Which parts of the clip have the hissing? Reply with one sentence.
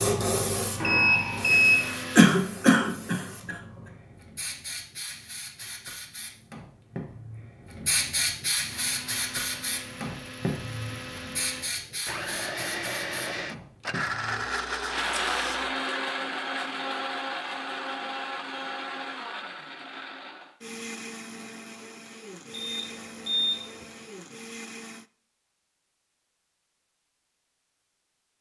You can hear the hissing from 0.0 to 15.7 s.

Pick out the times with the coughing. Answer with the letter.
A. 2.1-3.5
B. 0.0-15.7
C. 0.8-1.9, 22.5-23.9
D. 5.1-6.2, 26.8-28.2
A.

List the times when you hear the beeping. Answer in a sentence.
You can hear the beeping from 0.8 to 1.9 s and from 22.5 to 23.9 s.